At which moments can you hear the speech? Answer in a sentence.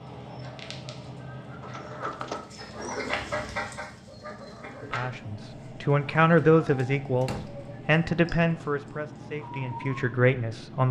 The speech can be heard from 4.9 to 10.8 s.